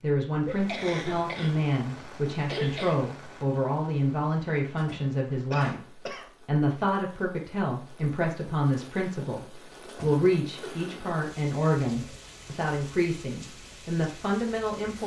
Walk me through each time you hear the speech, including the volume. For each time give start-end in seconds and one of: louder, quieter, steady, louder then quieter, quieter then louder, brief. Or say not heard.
0.0-15.0 steady.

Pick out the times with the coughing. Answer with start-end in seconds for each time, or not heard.
0.5-1.7, 2.5-3.0, 5.5-6.3, 10.6-11.2.